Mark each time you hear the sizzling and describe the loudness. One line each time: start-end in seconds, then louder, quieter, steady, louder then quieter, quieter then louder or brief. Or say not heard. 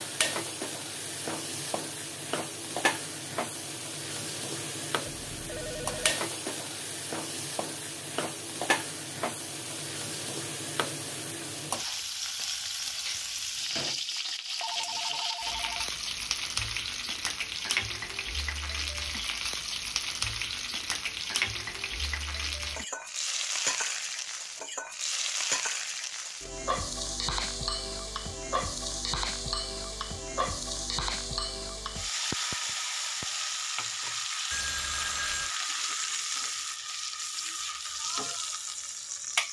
0.0-39.4 steady.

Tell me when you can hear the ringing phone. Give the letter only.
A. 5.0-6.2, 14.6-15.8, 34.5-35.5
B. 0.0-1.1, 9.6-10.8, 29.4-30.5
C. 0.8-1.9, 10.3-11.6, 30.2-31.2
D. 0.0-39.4
A.